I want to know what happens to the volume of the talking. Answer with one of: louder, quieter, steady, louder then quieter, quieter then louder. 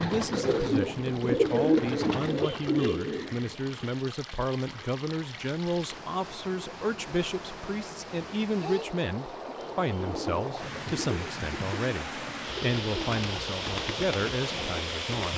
steady.